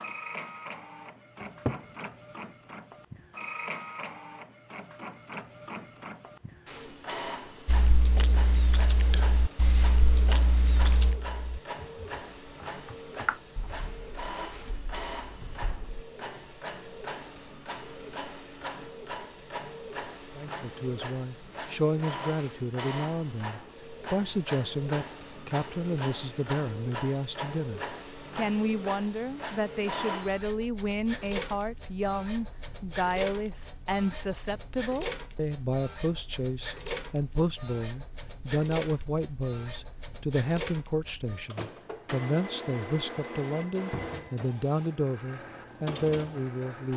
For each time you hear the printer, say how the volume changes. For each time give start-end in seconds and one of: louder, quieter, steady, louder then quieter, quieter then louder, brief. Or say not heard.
0.0-46.9 steady.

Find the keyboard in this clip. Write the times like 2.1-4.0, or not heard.
7.7-16.1.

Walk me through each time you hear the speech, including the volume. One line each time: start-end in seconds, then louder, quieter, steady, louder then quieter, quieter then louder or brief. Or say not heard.
20.4-46.9 steady.